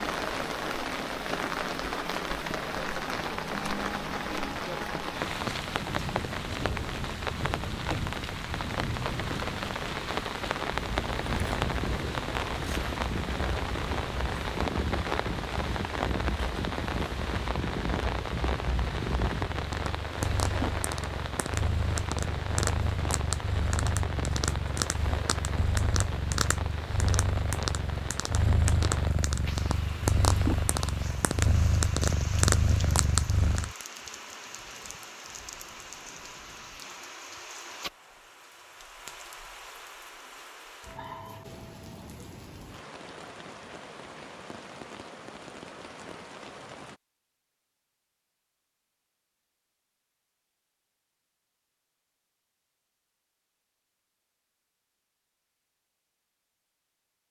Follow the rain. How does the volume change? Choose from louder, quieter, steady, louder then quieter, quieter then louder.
quieter.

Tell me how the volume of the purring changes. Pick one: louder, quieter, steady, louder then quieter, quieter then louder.
louder.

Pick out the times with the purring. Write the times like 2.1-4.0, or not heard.
10.7-33.8.